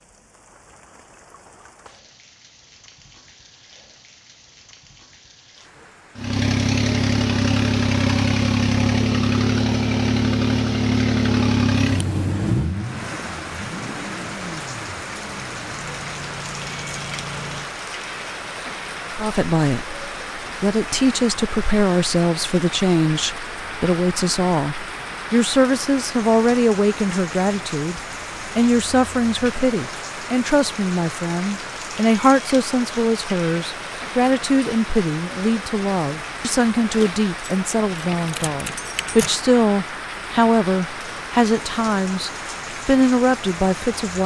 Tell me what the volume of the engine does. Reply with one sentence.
The loudness of the engine goes down.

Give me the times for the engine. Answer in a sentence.
The engine can be heard from 6.2 to 17.8 s.